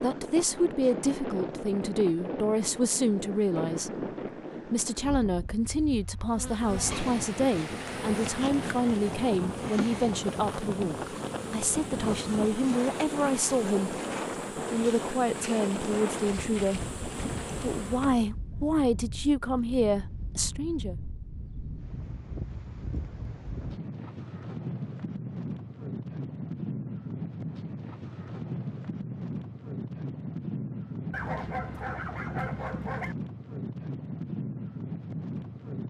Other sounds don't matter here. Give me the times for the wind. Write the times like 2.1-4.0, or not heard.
0.0-35.8.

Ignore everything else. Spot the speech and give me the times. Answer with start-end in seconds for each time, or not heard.
0.0-4.0, 4.7-16.8, 17.6-20.9.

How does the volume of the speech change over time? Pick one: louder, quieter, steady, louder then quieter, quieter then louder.
steady.